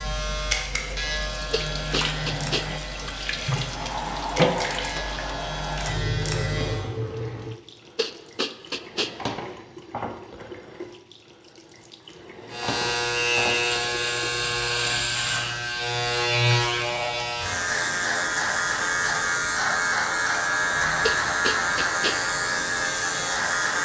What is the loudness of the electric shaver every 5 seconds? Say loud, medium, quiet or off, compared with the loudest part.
medium, medium, loud, loud, loud.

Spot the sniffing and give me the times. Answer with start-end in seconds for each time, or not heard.
1.5-2.6, 8.0-9.1, 21.0-22.1.